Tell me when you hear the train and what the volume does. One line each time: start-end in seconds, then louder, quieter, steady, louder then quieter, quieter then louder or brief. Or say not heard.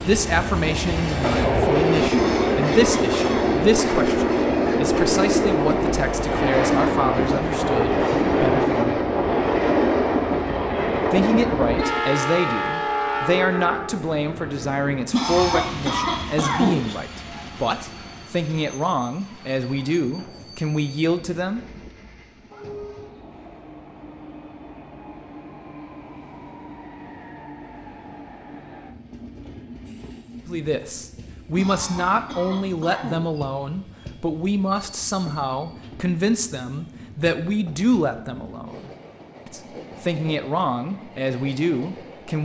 0.0-42.4 quieter.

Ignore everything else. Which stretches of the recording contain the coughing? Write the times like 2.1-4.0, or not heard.
1.9-3.6, 15.1-16.9, 31.6-33.2.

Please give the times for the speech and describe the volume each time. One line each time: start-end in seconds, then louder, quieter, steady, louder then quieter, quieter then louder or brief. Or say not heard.
0.0-9.0 steady
11.1-21.6 steady
30.4-42.4 steady.